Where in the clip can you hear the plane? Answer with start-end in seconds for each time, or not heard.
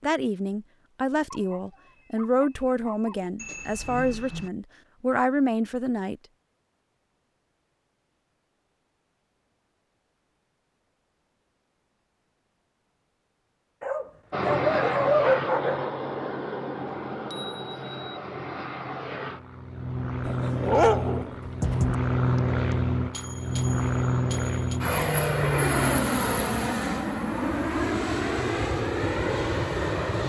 14.3-30.2.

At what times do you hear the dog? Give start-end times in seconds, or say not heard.
1.3-3.3, 13.8-15.8, 20.2-21.9.